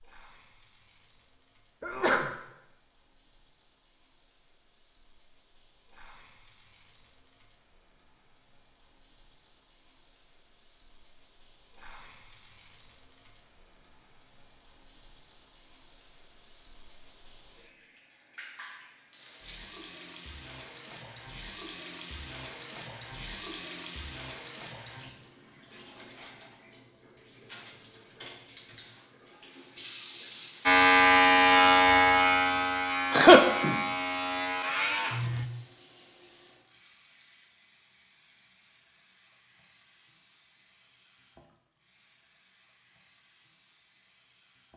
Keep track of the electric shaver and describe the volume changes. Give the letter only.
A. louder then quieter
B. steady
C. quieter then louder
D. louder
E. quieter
E.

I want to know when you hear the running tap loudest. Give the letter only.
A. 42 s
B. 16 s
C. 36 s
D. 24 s
D.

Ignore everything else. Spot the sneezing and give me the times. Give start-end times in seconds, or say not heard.
1.8-2.3, 33.1-33.8.